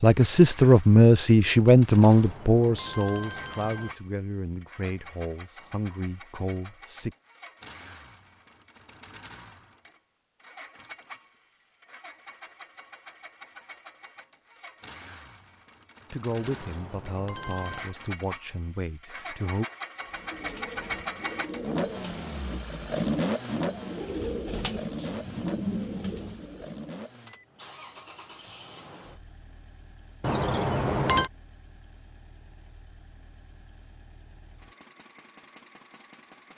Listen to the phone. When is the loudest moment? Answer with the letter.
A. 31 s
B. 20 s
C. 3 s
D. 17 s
A.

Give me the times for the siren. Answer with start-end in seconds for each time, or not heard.
not heard.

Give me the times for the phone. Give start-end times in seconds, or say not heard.
2.1-4.0, 16.4-17.9, 30.2-31.3.